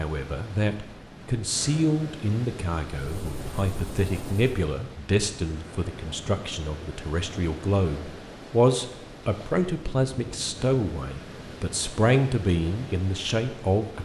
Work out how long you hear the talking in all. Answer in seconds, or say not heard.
14 s.